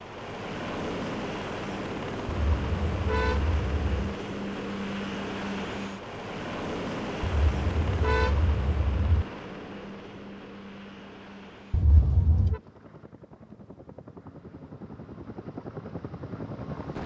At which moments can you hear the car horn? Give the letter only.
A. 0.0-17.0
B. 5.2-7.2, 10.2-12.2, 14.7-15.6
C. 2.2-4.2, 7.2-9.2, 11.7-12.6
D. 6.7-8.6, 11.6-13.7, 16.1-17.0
C.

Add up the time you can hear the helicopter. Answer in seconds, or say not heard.
17 s.